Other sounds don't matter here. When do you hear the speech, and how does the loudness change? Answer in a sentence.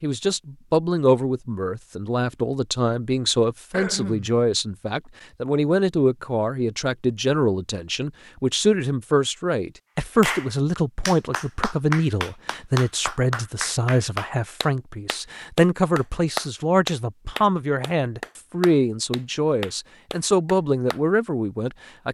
You can hear the speech from 0.0 to 22.1 s, at a steady volume.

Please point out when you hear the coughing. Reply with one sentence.
The coughing can be heard from 3.7 to 4.3 s.